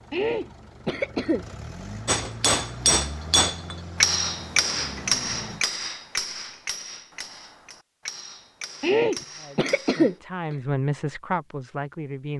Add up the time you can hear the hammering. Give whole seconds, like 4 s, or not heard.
8 s.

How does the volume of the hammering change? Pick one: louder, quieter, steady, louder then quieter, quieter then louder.
quieter.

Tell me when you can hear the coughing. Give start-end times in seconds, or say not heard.
0.1-1.4, 8.8-10.6.